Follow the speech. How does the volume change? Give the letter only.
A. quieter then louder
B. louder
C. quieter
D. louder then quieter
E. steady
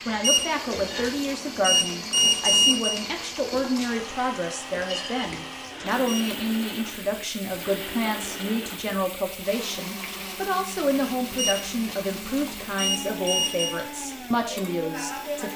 E.